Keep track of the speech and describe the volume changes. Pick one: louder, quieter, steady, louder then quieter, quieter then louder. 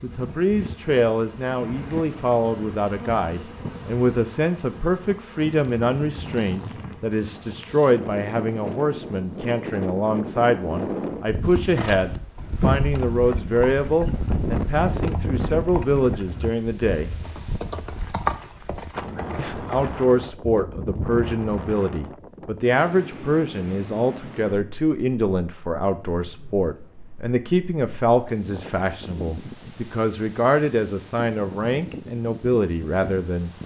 steady.